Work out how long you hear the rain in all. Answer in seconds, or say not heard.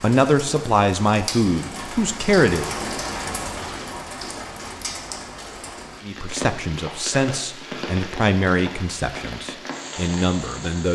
11 s.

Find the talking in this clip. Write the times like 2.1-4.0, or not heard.
0.0-2.8, 6.0-10.9.